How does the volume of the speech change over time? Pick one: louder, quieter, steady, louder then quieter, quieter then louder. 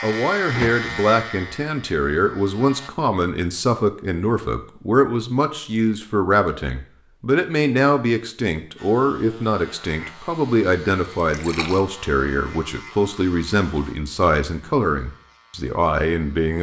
steady.